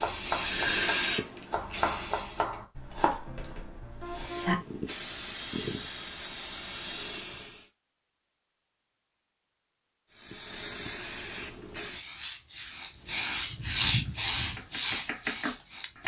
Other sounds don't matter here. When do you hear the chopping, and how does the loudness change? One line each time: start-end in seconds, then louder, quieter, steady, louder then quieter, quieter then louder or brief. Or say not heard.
0.0-4.5 louder then quieter
14.1-16.0 brief.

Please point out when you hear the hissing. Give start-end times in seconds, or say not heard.
0.0-2.5, 4.0-7.7, 10.1-16.0.